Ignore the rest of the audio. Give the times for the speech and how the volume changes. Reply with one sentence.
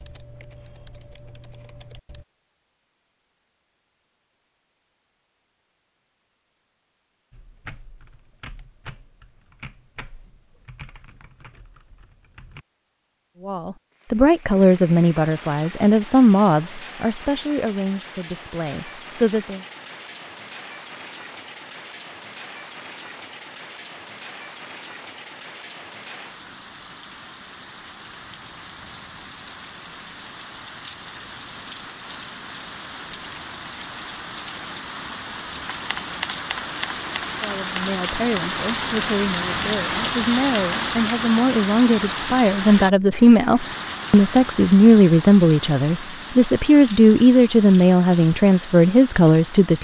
You can hear the speech from 13.4 to 19.6 s, getting quieter; and from 37.4 to 49.8 s, getting louder.